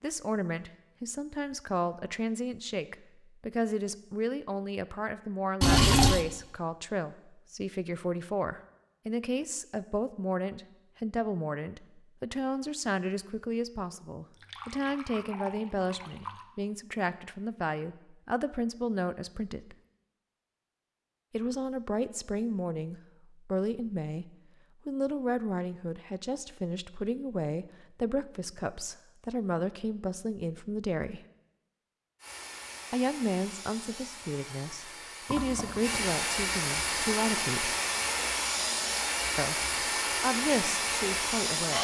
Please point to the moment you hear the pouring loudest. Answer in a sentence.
The loudest moment of the pouring is at 6 seconds.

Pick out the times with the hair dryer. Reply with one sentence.
You can hear the hair dryer from 32.2 to 41.7 s.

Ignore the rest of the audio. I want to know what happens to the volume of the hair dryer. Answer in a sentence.
The volume of the hair dryer goes up.